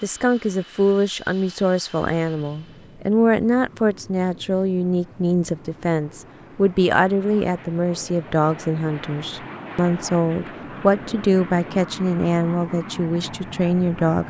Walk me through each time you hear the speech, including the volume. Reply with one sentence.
The speech can be heard from 0.0 to 14.2 s, at a steady volume.